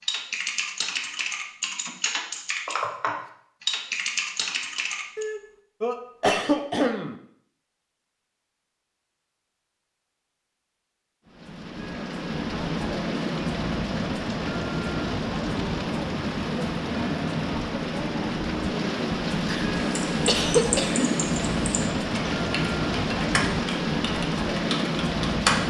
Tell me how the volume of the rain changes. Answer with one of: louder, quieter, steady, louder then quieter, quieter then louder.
steady.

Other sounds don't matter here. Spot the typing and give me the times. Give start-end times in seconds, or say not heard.
0.0-5.2, 19.7-25.6.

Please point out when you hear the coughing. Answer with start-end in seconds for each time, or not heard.
5.2-7.2, 19.4-21.1.